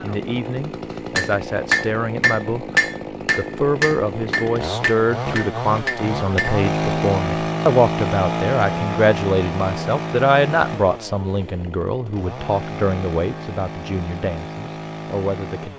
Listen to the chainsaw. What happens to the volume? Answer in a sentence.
The volume of the chainsaw goes up, then down.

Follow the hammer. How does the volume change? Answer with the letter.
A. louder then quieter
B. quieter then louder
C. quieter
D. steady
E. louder
C.